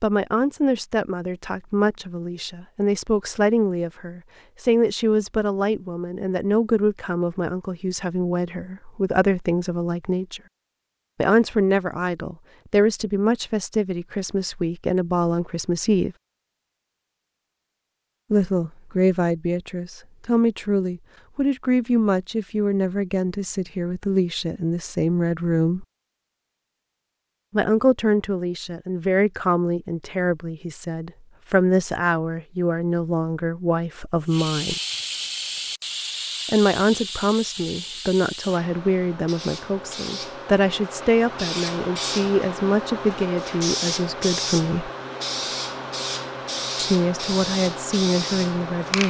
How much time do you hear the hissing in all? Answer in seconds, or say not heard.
15 s.